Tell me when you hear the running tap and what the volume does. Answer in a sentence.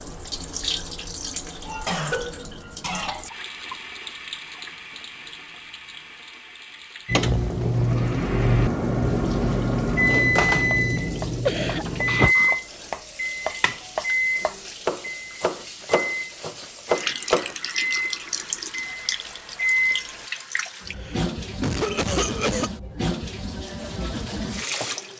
You can hear the running tap from 0.0 to 25.1 s, getting quieter then louder.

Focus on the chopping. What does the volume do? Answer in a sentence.
The loudness of the chopping goes up.